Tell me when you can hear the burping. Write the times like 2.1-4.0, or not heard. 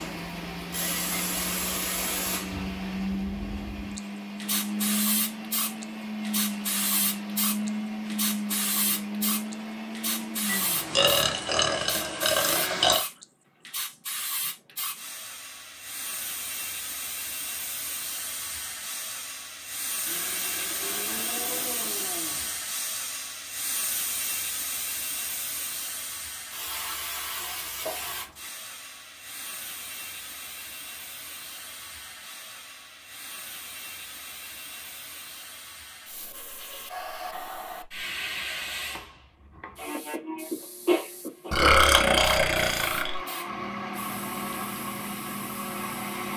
10.4-13.1, 41.5-43.2.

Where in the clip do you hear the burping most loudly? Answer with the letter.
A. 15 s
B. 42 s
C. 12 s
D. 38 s
B.